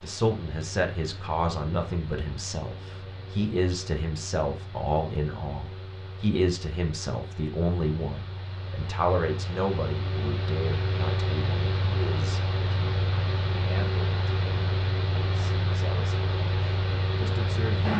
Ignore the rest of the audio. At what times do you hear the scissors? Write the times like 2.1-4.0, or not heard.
not heard.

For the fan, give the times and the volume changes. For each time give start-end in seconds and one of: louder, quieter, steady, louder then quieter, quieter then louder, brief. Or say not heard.
0.0-17.9 louder.